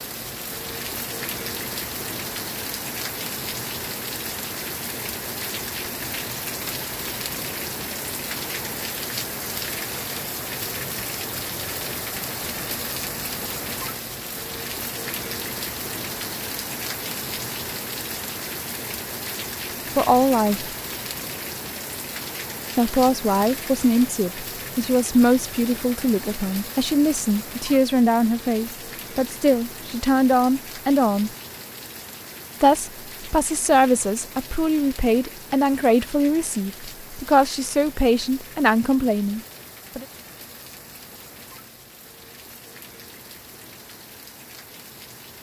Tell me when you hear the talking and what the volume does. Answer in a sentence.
You can hear the talking briefly from 19.9 to 20.7 s; from 22.8 to 31.3 s, at a steady volume; and from 32.6 to 40.0 s, at a steady volume.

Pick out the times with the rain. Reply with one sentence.
You can hear the rain from 0.0 to 45.3 s.